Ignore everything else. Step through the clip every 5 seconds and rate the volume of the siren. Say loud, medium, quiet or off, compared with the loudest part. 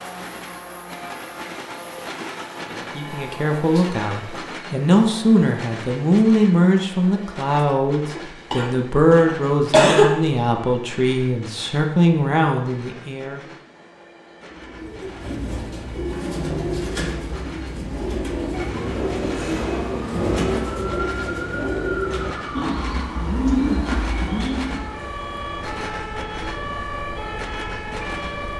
off, off, off, loud, loud, loud.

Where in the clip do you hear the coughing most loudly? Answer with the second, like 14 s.
10 s.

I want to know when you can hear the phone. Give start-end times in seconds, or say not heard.
not heard.